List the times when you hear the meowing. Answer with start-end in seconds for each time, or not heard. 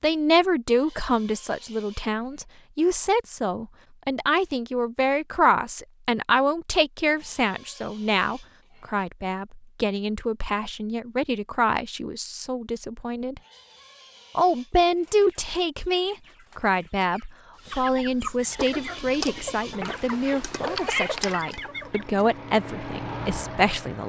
19.9-21.4.